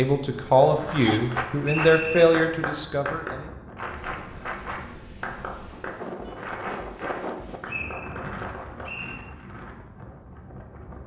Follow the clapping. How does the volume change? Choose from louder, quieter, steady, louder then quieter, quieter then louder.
quieter.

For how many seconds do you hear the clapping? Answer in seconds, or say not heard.
9 s.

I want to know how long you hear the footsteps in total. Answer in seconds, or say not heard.
not heard.